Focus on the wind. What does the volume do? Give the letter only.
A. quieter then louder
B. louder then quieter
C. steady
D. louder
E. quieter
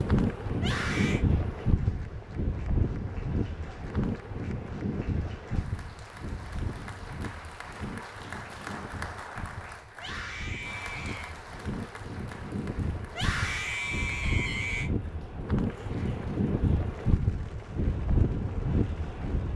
A.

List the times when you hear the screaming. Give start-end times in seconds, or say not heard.
0.6-1.2, 9.9-11.3, 13.1-14.9.